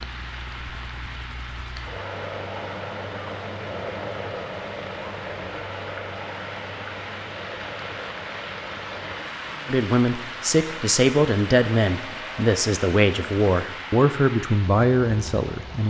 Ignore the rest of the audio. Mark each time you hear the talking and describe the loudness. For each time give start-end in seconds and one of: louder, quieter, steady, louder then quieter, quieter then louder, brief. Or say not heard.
9.7-15.8 steady.